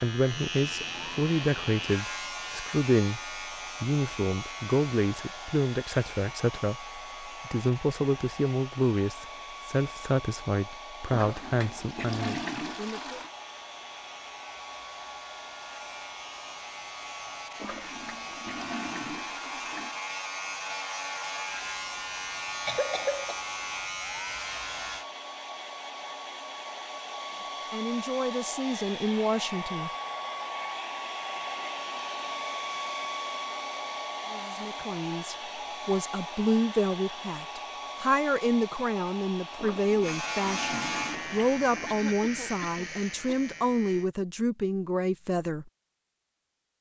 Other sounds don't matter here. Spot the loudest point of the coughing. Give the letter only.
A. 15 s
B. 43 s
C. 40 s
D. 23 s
D.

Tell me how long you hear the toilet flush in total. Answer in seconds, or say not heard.
7 s.